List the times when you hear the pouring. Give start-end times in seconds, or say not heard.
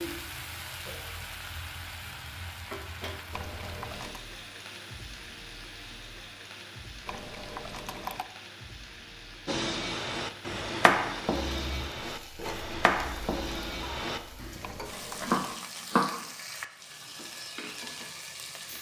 3.3-4.2, 7.0-8.3, 14.6-15.6.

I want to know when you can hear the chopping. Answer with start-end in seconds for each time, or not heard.
9.4-16.1.